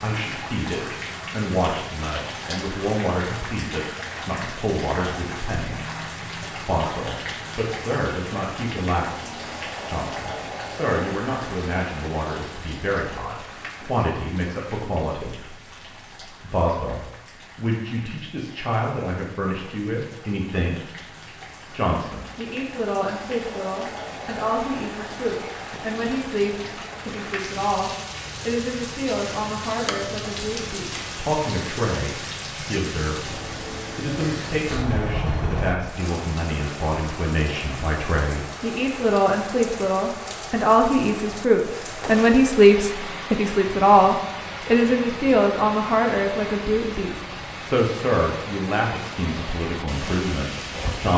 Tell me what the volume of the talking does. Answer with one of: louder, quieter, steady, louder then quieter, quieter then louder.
louder.